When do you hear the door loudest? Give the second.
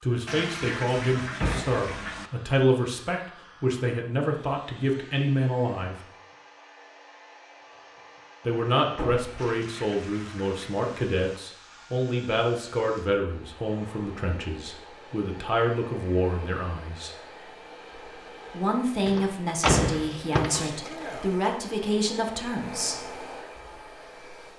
20 s.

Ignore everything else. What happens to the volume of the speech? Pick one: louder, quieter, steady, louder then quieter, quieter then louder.
steady.